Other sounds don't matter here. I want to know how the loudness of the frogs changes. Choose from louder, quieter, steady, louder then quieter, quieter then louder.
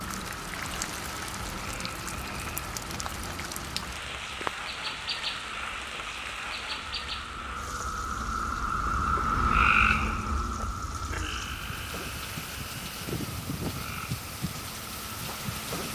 louder then quieter.